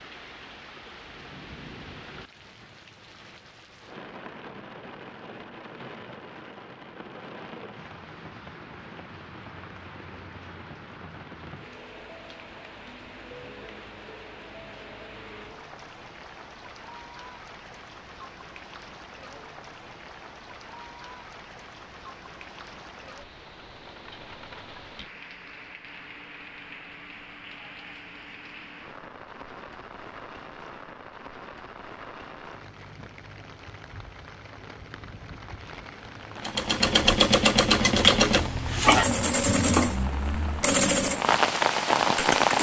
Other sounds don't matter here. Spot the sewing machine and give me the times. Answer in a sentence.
The sewing machine can be heard from 36.5 to 42.5 s.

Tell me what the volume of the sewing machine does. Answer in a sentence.
The volume of the sewing machine goes down.